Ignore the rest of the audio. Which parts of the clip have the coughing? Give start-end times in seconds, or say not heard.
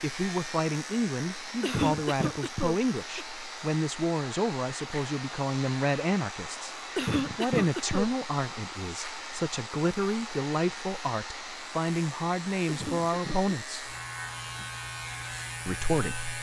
1.6-3.2, 7.0-8.1, 12.7-13.6.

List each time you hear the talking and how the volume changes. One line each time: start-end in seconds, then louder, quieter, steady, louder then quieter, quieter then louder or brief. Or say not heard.
0.0-13.9 steady
15.7-16.3 brief.